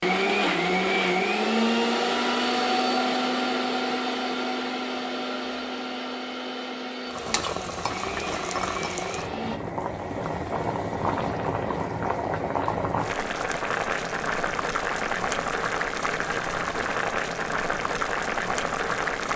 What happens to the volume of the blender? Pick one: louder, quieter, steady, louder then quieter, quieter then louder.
quieter.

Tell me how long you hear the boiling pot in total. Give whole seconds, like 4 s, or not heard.
12 s.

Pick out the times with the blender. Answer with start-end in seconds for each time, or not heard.
0.0-9.6.